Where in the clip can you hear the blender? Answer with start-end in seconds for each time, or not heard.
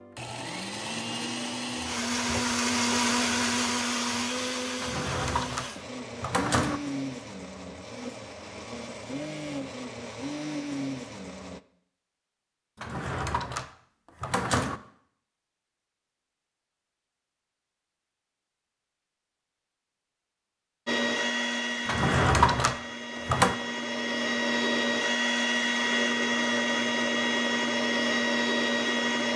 0.0-11.6, 20.9-29.3.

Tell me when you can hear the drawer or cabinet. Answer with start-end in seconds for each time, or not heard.
4.8-6.8, 12.8-14.8, 21.9-23.6.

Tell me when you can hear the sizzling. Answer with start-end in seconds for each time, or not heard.
not heard.